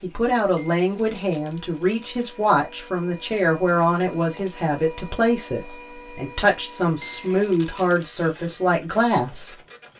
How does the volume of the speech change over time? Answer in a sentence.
The loudness of the speech stays about the same.